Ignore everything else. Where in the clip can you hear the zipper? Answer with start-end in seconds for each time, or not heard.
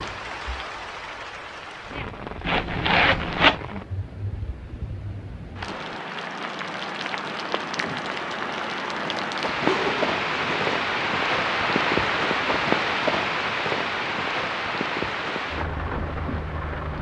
2.5-3.6, 9.6-10.8.